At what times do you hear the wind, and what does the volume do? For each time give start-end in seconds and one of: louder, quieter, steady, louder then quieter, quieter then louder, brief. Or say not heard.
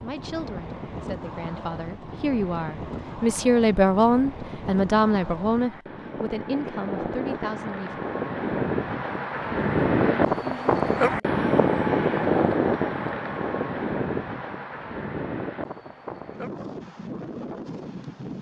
0.0-18.3 louder then quieter.